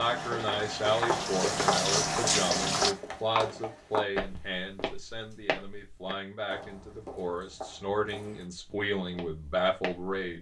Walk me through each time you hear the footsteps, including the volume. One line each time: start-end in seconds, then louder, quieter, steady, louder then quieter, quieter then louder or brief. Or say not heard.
0.3-10.2 quieter.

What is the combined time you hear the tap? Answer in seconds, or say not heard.
3 s.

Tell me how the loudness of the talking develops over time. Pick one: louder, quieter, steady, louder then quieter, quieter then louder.
quieter then louder.